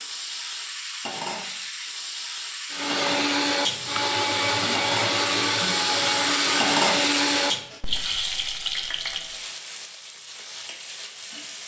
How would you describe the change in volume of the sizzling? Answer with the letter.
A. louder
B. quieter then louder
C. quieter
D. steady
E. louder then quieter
E.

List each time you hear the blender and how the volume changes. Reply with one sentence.
You can hear the blender from 2.7 to 7.8 s, at a steady volume.